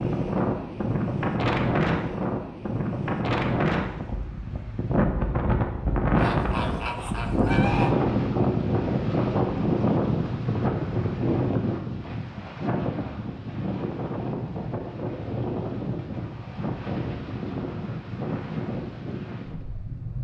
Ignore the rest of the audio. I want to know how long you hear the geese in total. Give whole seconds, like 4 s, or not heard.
2 s.